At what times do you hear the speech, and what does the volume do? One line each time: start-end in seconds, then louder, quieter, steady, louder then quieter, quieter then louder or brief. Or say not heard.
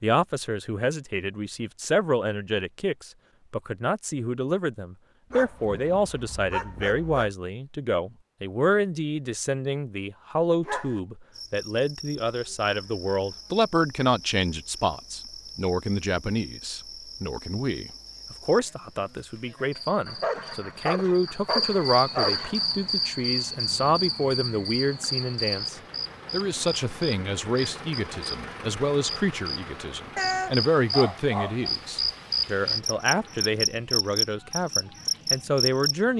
0.0-36.1 steady.